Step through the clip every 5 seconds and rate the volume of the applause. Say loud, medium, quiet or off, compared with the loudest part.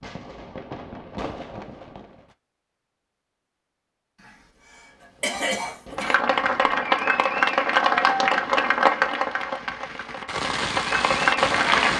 off, loud, loud.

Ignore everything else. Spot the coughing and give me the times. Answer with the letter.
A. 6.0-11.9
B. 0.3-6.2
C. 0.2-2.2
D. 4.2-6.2
D.